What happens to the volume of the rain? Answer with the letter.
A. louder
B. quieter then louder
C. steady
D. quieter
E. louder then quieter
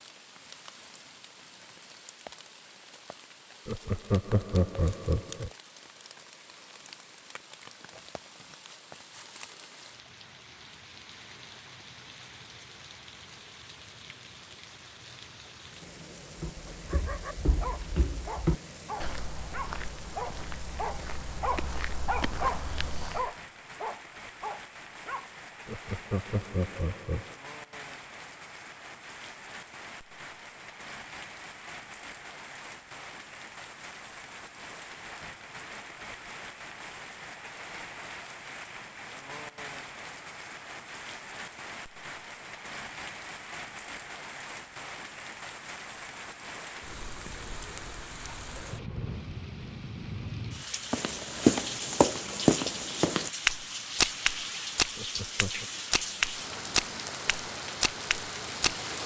A.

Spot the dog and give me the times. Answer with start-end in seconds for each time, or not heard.
16.9-25.3.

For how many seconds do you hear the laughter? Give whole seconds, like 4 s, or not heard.
4 s.